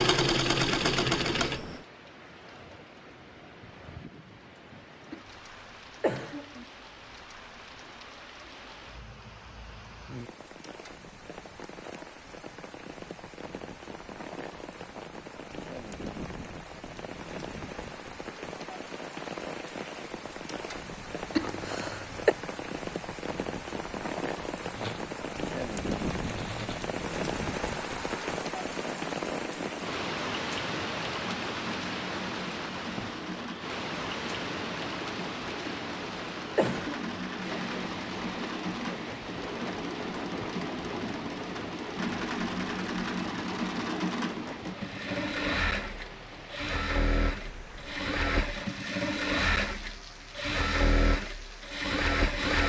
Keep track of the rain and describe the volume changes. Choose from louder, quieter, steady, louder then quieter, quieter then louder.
louder then quieter.